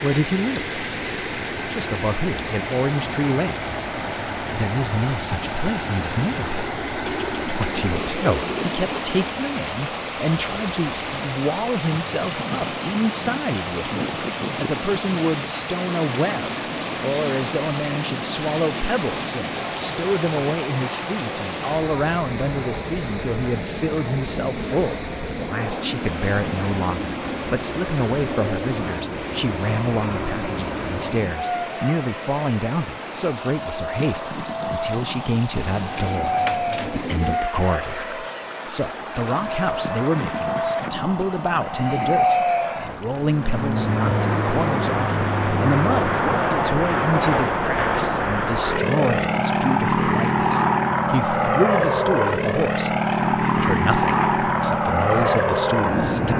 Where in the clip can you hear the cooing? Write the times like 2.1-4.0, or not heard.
7.0-9.0, 35.7-37.4.